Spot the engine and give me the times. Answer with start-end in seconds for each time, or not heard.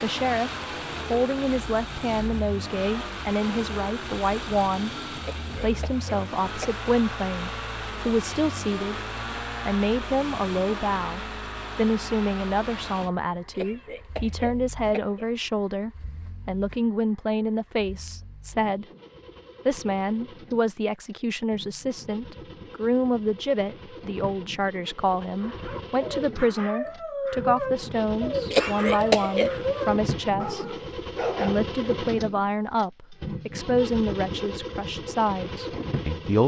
0.0-36.4.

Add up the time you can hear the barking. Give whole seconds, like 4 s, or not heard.
6 s.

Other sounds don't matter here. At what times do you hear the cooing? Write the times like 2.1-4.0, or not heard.
not heard.